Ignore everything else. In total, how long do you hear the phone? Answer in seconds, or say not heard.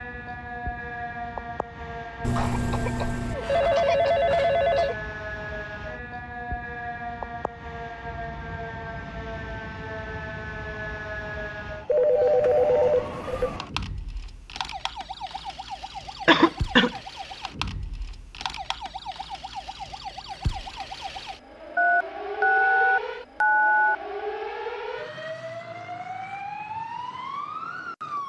7 s.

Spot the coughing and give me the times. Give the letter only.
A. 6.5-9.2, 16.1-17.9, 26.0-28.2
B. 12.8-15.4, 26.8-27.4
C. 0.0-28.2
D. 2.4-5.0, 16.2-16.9
D.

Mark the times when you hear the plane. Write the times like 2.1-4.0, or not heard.
not heard.